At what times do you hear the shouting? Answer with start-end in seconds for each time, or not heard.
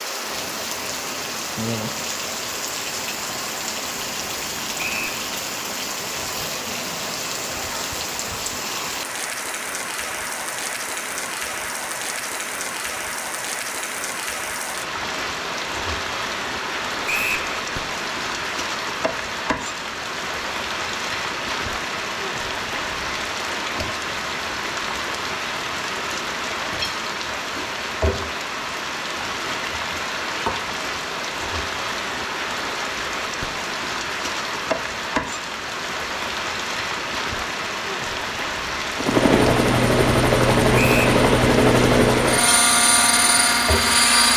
not heard.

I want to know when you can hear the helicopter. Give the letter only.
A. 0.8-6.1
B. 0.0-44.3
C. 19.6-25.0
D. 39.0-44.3
D.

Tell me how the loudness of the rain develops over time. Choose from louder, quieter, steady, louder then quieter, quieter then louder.
steady.